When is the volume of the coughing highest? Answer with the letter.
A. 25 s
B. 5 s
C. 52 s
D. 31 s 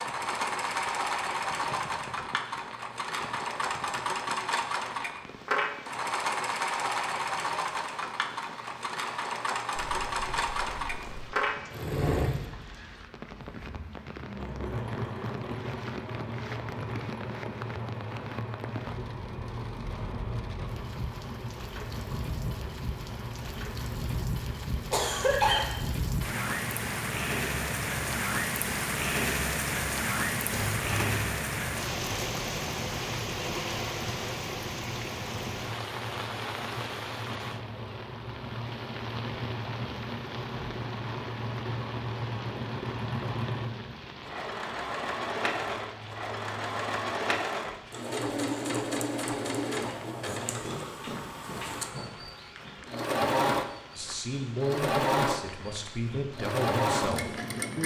A.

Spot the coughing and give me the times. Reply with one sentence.
You can hear the coughing from 24.9 to 25.8 s and from 50.6 to 52.1 s.